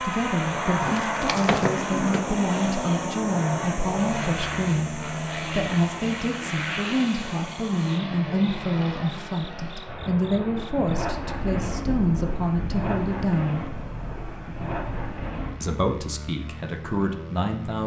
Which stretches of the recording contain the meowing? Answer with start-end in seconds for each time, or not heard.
not heard.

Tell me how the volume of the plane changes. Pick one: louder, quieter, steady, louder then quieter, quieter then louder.
quieter.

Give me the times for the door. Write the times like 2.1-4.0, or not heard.
0.8-2.2.